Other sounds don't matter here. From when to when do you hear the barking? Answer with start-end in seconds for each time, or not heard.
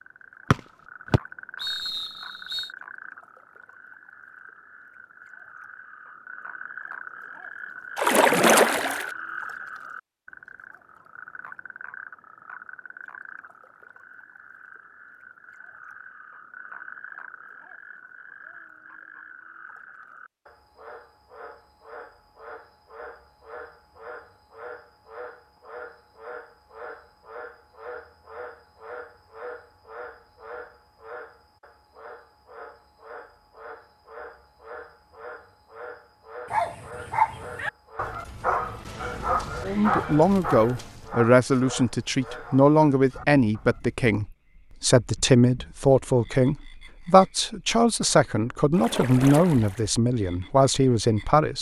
36.5-44.0.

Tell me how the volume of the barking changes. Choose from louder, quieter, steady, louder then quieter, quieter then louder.
quieter.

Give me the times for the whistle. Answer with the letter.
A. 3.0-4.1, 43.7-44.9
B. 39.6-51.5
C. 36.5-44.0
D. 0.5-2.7
D.